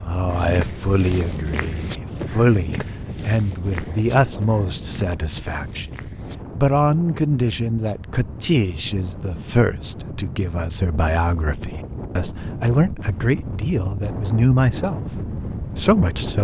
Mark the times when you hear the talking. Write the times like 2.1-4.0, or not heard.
0.0-16.3.